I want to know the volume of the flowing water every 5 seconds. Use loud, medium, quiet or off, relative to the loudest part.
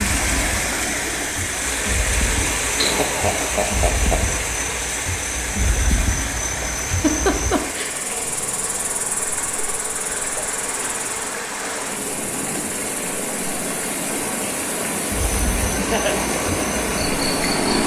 loud, medium, medium, loud.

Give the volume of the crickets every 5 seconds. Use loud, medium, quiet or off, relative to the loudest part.
loud, loud, medium, loud.